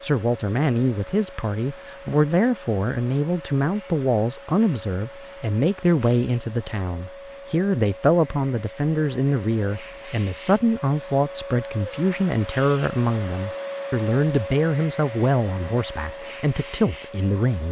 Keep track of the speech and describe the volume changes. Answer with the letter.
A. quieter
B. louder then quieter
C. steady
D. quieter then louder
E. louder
C.